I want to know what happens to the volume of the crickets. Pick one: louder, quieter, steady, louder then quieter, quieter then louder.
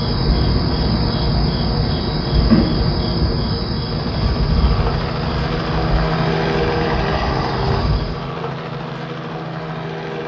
quieter.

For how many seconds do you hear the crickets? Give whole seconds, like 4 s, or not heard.
8 s.